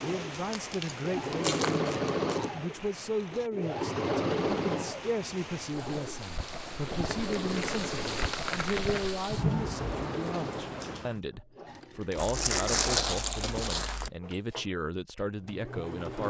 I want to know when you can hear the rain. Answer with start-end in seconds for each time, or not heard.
0.0-11.2.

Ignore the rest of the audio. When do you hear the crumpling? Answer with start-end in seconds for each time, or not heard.
0.3-2.5, 7.1-9.2, 12.2-14.1.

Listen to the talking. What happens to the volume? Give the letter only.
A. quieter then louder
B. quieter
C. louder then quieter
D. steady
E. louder
D.